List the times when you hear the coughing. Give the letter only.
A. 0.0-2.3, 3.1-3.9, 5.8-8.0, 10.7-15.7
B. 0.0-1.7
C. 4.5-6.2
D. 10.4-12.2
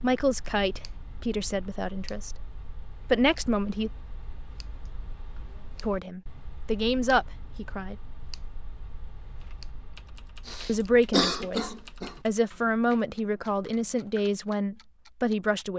D.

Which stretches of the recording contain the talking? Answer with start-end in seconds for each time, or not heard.
0.0-2.3, 3.1-3.9, 5.8-8.0, 10.7-15.7.